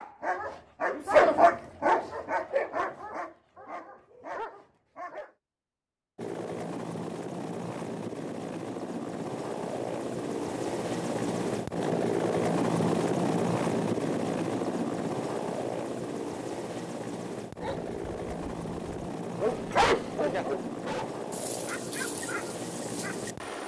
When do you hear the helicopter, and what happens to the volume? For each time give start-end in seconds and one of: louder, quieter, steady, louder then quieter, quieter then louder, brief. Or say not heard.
6.2-23.6 louder then quieter.